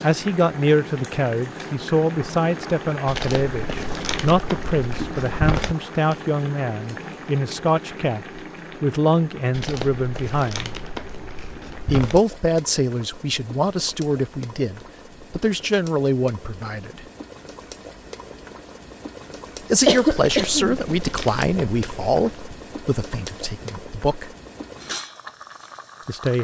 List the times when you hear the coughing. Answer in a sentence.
You can hear the coughing from 19.9 to 20.8 s.